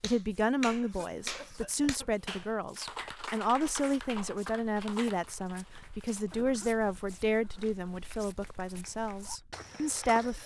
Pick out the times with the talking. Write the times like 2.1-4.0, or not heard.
0.0-10.4.